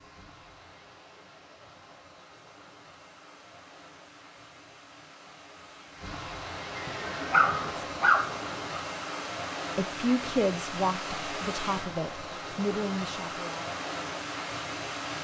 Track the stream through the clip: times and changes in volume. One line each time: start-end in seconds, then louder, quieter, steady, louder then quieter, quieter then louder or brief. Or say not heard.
0.0-15.1 louder.